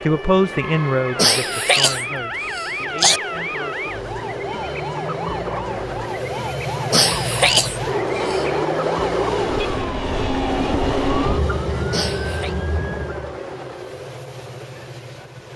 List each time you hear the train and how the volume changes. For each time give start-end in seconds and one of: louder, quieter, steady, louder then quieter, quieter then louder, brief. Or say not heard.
0.0-15.5 louder then quieter.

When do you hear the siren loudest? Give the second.
11 s.